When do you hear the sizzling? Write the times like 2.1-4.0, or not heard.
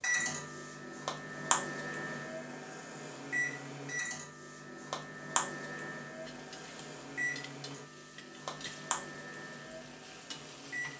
6.2-10.9.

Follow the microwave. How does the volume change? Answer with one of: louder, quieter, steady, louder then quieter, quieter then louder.
quieter.